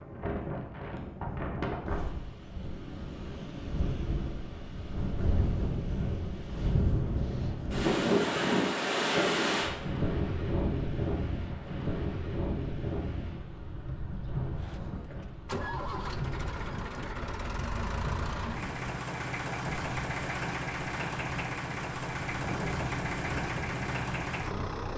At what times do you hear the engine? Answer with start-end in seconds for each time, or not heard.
14.6-24.9.